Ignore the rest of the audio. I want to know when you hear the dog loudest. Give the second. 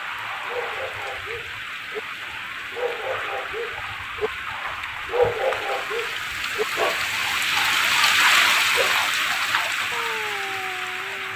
5 s.